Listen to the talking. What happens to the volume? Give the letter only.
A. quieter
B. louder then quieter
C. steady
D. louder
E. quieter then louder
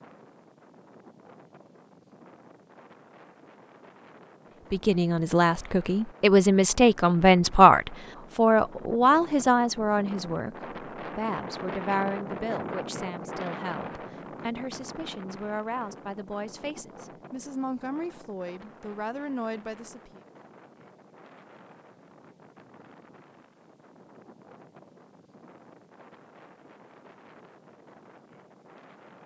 A.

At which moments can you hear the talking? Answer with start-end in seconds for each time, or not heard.
4.7-20.2.